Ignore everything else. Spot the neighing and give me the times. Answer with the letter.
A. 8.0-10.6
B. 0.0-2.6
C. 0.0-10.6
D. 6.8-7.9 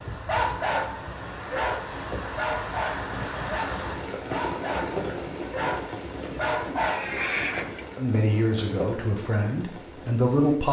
D.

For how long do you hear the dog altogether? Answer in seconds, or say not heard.
7 s.